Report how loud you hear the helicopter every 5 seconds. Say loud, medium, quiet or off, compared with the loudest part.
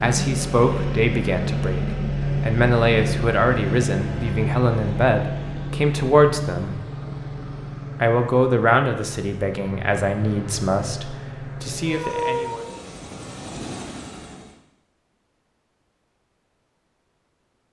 loud, medium, medium, off.